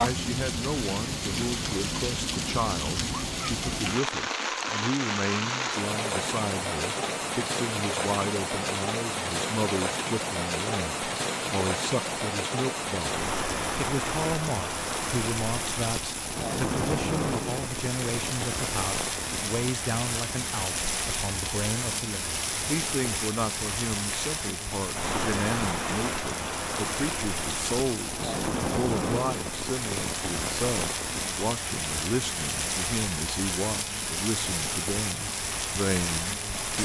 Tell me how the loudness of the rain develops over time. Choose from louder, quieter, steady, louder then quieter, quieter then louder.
steady.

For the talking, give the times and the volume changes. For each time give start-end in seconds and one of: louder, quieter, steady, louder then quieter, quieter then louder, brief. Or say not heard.
0.0-36.8 steady.